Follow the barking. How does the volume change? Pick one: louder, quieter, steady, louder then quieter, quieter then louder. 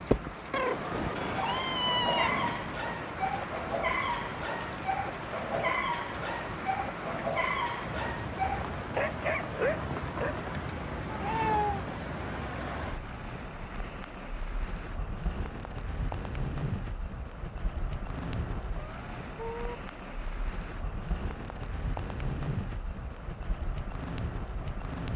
steady.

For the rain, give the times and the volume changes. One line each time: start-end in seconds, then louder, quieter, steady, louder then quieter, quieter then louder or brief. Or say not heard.
0.0-25.1 steady.